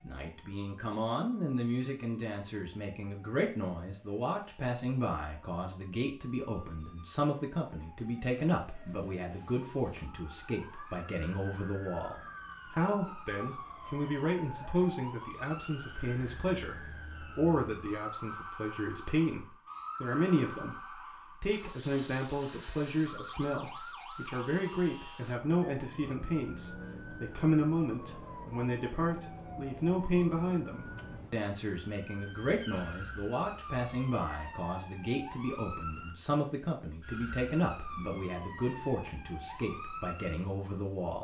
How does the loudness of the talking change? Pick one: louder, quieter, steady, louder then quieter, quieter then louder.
steady.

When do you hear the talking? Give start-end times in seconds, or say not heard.
0.0-41.2.